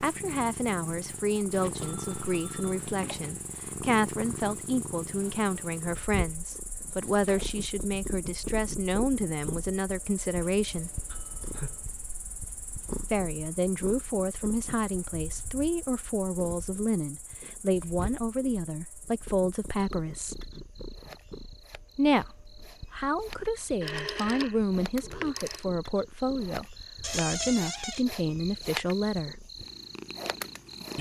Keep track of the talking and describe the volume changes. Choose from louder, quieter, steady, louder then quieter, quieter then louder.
steady.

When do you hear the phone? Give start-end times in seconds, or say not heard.
1.5-3.4, 11.1-11.8, 23.8-25.6.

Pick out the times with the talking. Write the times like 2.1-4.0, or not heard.
0.0-11.1, 13.1-20.4, 21.9-29.4.